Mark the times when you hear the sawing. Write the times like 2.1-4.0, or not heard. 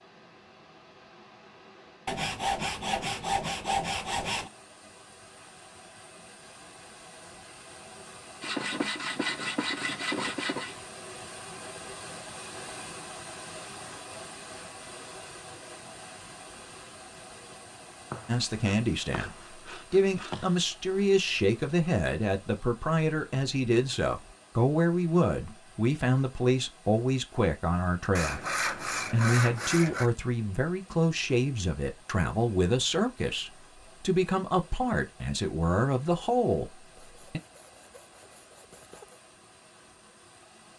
2.0-4.5, 8.4-10.8, 18.1-20.6, 28.1-30.1, 37.0-39.2.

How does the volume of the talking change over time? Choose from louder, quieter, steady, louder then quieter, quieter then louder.
steady.